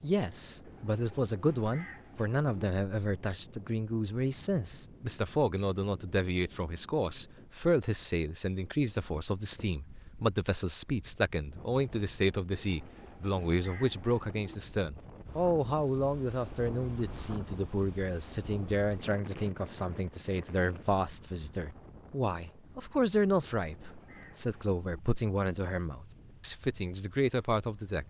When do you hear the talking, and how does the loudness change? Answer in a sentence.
You can hear the talking from 0.0 to 28.0 s, at a steady volume.